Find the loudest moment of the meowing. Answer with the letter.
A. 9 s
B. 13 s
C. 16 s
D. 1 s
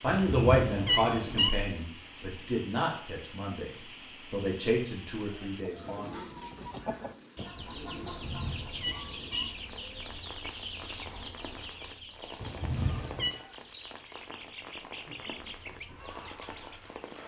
D.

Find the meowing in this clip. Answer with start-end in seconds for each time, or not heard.
0.1-1.5, 8.0-9.4, 12.4-13.3.